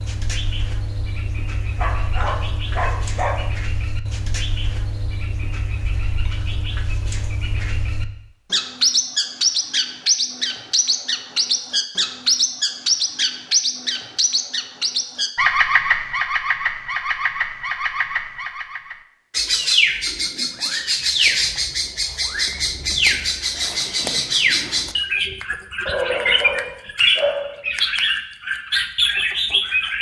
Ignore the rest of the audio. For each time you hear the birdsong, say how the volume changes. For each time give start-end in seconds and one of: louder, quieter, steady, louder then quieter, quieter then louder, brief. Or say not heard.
0.0-29.9 louder.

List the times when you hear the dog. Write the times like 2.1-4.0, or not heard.
1.8-3.4, 25.9-27.6.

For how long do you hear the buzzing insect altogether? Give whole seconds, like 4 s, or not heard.
not heard.